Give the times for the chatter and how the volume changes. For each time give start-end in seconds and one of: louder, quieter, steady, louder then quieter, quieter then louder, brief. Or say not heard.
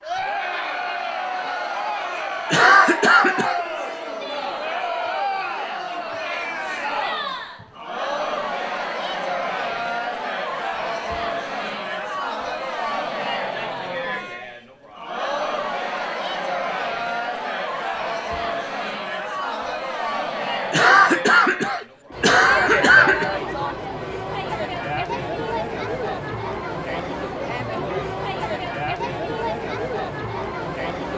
0.0-31.1 steady.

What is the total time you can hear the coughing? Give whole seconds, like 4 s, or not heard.
4 s.